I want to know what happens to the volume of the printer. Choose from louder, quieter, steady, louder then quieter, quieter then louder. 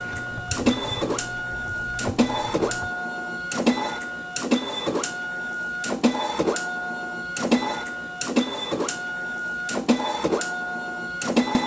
steady.